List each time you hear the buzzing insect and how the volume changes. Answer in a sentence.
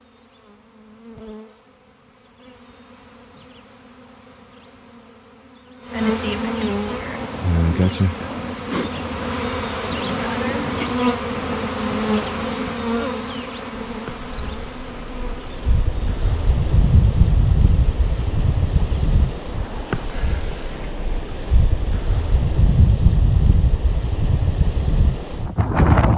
The buzzing insect can be heard from 0.0 to 20.0 s, getting louder then quieter.